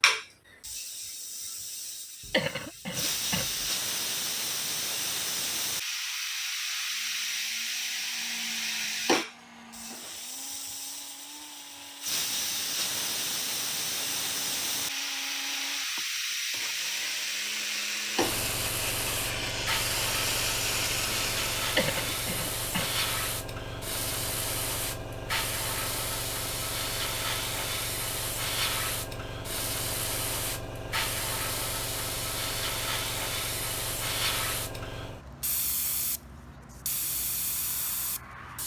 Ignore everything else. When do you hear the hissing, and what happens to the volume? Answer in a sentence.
You can hear the hissing from 0.0 to 38.6 s, at a steady volume.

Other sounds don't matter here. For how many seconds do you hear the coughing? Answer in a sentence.
The coughing can be heard for 3 seconds in total.